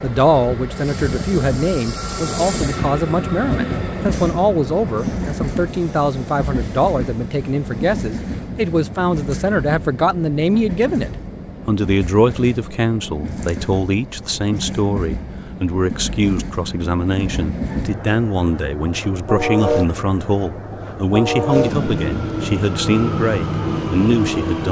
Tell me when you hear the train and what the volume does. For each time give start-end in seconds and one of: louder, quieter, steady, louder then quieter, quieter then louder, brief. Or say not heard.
0.0-24.6 quieter then louder.